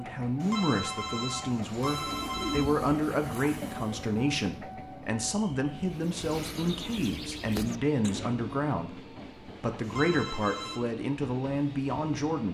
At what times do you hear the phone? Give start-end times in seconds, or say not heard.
0.4-2.6, 9.8-10.8.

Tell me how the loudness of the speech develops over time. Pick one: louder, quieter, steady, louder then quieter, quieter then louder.
steady.